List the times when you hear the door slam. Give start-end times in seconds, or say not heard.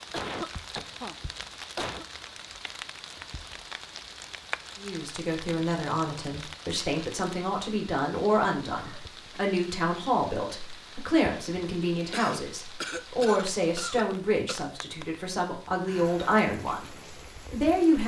not heard.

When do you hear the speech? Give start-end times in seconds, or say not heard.
4.8-18.0.